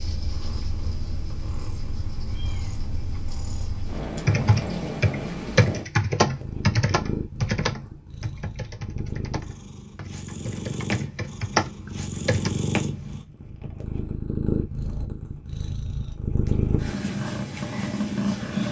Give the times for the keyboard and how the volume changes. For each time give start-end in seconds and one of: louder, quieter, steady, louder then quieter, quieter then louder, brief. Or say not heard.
4.2-12.5 quieter then louder.